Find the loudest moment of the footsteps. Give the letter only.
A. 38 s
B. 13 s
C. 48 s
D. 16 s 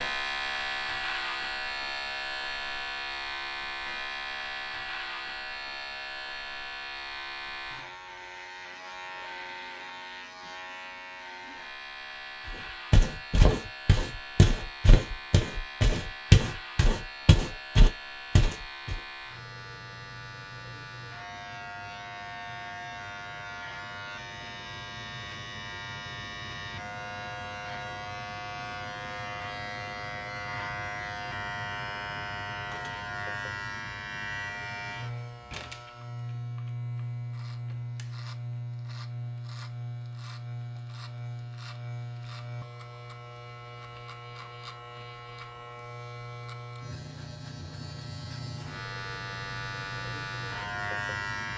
D.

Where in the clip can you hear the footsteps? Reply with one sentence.
The footsteps can be heard from 12.4 to 18.9 s.